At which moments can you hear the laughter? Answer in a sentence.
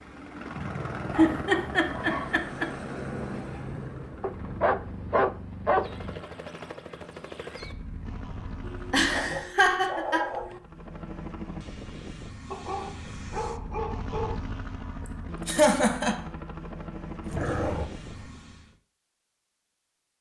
The laughter can be heard from 1.1 to 2.6 s, from 8.9 to 10.2 s and from 15.4 to 16.1 s.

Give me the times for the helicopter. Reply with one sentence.
You can hear the helicopter from 0.0 to 9.6 s and from 10.6 to 18.8 s.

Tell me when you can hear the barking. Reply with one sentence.
The barking can be heard from 1.1 to 2.4 s, from 4.2 to 6.2 s, from 8.6 to 10.6 s, from 12.5 to 14.3 s and from 17.2 to 18.3 s.